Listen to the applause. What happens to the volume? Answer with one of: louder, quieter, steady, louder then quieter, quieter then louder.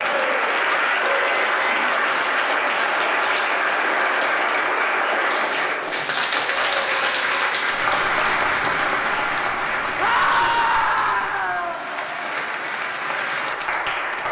quieter.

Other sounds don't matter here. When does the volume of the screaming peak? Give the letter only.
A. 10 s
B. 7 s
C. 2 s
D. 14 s
A.